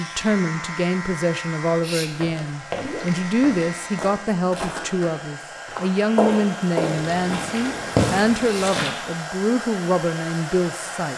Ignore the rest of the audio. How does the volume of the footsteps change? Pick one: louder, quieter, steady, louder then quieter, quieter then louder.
louder.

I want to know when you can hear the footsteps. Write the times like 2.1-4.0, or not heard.
2.1-8.9.